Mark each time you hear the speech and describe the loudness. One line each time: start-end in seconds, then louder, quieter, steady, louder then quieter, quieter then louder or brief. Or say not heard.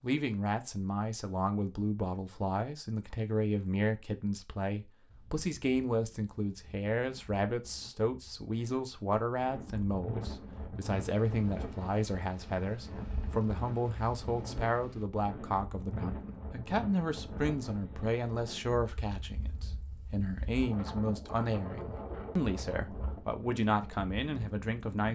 0.0-25.0 steady.